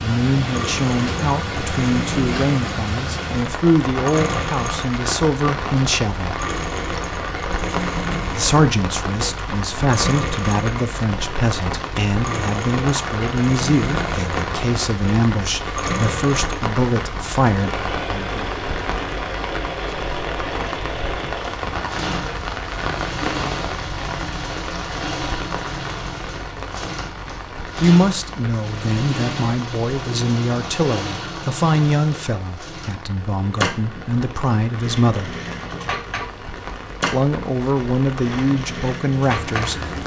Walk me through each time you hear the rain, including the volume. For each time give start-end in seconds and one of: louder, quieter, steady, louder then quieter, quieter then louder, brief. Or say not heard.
0.0-40.0 quieter.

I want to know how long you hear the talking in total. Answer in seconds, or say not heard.
27 s.